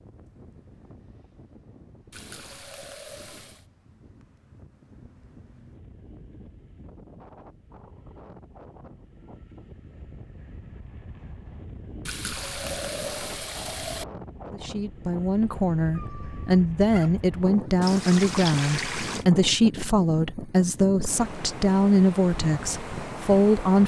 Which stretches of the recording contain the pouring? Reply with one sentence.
You can hear the pouring from 2.1 to 3.6 s, from 12.1 to 14.1 s and from 17.8 to 19.2 s.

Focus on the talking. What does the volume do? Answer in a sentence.
The volume of the talking stays about the same.